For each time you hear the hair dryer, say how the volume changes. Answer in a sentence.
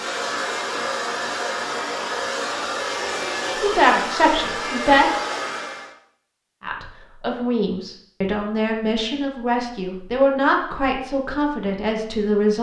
The hair dryer can be heard from 0.0 to 6.0 s, at a steady volume.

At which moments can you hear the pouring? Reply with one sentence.
The pouring can't be heard in this clip.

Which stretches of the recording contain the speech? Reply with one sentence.
The speech can be heard from 3.6 to 5.1 s and from 6.6 to 12.5 s.